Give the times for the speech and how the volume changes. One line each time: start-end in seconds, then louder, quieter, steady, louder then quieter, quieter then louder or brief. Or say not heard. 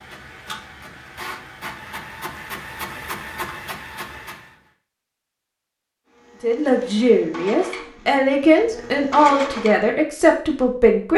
6.4-11.1 steady.